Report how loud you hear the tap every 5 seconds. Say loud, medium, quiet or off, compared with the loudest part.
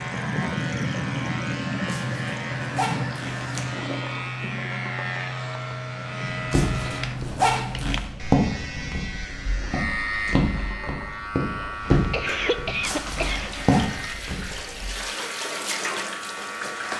loud, medium, medium, loud.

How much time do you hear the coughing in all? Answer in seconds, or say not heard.
2 s.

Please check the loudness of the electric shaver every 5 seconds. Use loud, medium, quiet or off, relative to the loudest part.
loud, loud, loud, medium.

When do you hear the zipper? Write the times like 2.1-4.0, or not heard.
1.9-3.7, 6.5-8.1, 12.8-13.8.